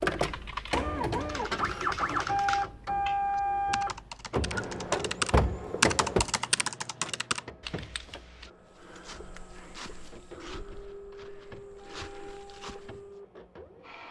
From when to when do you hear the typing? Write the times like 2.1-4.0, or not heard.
0.1-8.5.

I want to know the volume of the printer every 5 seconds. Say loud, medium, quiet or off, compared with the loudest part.
loud, medium, quiet.